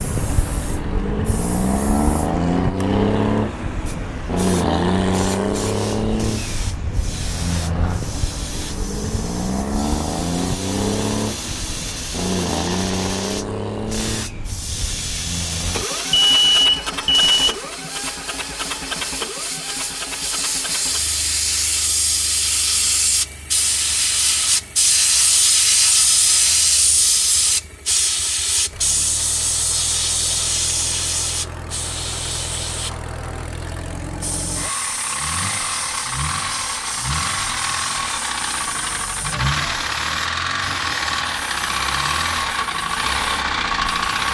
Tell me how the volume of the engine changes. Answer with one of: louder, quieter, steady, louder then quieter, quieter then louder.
quieter then louder.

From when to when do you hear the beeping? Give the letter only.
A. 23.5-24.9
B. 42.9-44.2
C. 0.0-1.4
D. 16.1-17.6
D.